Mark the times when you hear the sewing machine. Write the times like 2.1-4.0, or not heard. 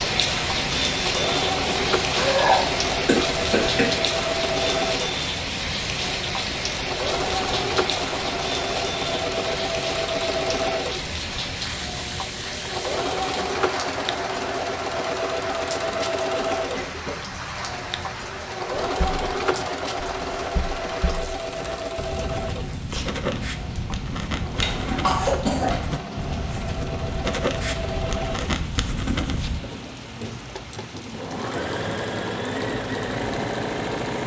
0.0-34.2.